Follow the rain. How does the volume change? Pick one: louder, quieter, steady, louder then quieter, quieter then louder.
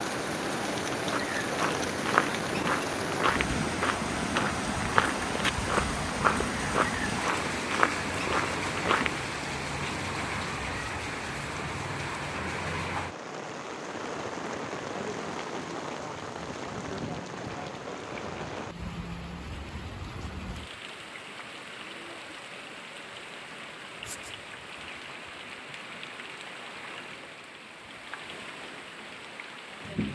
quieter.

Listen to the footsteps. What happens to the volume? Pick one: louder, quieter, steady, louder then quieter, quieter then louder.
steady.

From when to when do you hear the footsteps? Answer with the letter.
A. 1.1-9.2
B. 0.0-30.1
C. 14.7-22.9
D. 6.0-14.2
A.